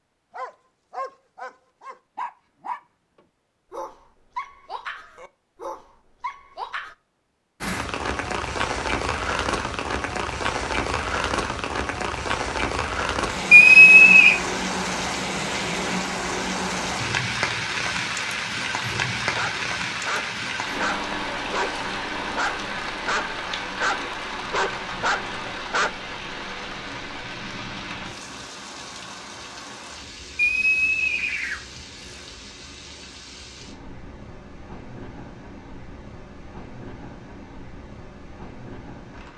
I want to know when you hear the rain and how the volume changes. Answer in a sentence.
You can hear the rain from 7.6 to 39.3 s, getting quieter.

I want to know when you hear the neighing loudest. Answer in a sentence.
The loudest moment of the neighing is at 14 seconds.